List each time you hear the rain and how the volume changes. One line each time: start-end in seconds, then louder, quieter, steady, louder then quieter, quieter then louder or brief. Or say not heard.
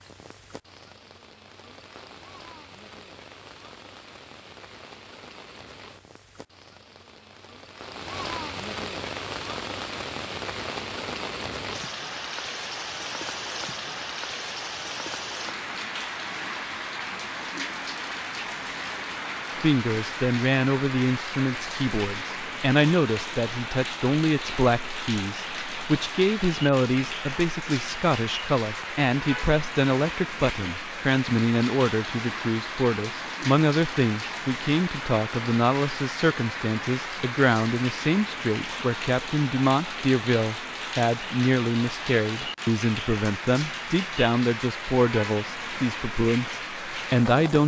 0.0-47.6 louder.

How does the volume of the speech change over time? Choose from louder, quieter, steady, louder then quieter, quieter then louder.
steady.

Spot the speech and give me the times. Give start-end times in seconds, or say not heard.
19.6-47.6.